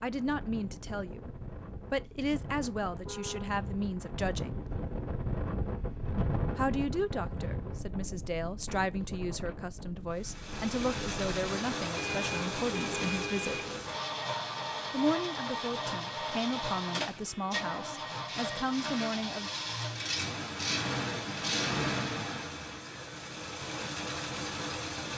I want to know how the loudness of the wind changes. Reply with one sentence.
The volume of the wind goes up, then down.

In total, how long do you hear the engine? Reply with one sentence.
The engine can be heard for 15 seconds in total.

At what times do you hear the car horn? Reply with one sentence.
The car horn can be heard from 2.9 to 3.5 s, from 11.9 to 14.0 s and from 17.1 to 17.6 s.